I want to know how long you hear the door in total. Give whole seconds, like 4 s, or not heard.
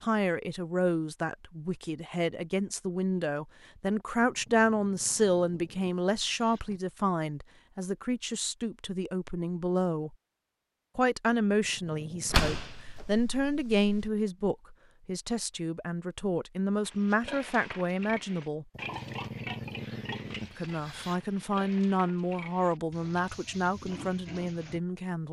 2 s.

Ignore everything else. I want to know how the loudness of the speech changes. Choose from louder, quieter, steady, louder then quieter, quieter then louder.
steady.